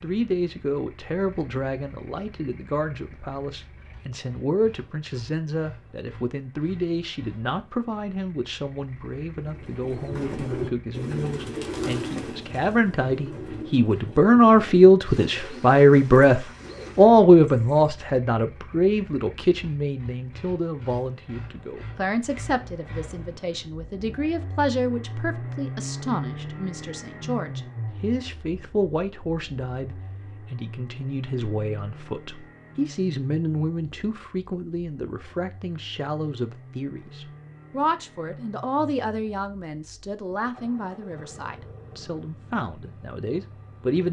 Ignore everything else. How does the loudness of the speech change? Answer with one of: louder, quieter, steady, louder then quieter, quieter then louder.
louder then quieter.